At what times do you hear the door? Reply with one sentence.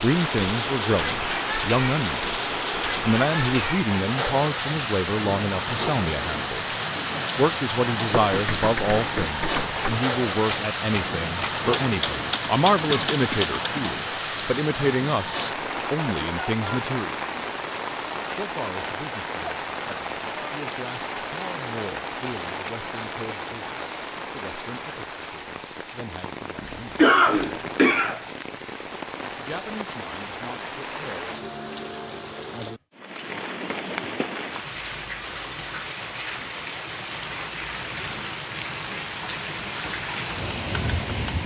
You can't hear the door here.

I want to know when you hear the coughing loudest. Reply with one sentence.
The loudest moment of the coughing is at 27 seconds.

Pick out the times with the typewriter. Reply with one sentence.
You can hear the typewriter from 8.1 to 13.7 s.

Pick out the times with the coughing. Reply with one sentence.
The coughing can be heard from 13.1 to 14.0 s and from 26.6 to 28.2 s.